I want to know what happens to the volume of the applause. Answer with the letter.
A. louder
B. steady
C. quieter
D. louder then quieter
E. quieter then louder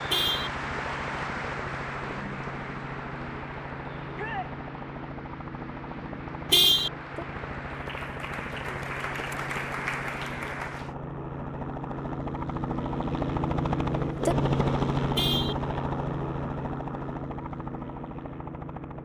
E.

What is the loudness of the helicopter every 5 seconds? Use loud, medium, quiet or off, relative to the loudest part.
medium, medium, loud, loud.